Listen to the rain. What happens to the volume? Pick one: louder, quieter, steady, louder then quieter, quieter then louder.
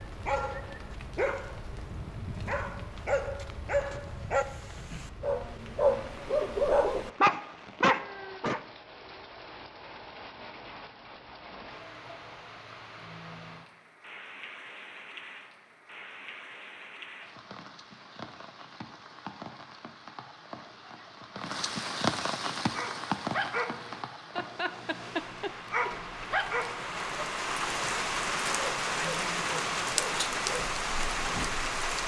louder.